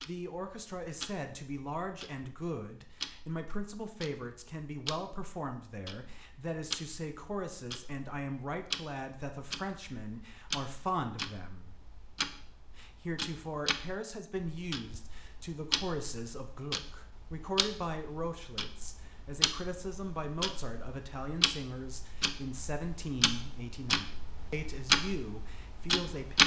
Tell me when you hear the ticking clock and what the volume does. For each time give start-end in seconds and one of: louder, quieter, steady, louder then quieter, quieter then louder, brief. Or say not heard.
0.0-26.4 louder.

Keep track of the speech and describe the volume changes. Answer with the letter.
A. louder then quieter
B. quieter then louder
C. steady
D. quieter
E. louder
C.